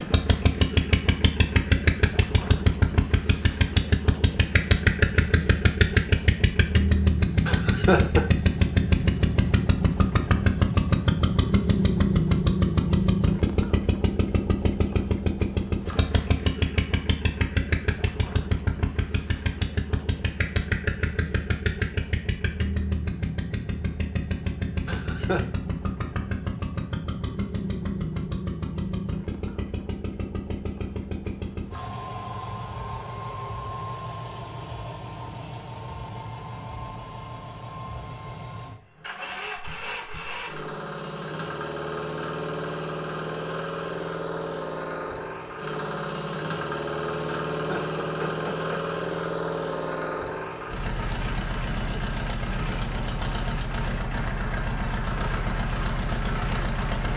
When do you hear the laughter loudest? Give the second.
8 s.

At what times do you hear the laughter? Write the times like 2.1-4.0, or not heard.
7.5-8.3, 24.9-25.4, 47.5-48.9.